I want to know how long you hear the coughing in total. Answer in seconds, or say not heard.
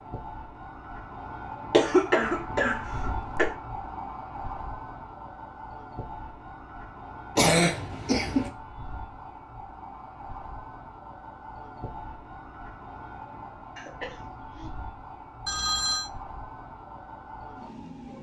4 s.